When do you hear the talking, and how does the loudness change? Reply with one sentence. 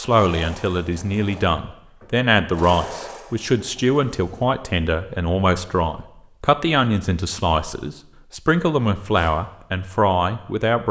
The talking can be heard from 0.0 to 10.8 s, at a steady volume.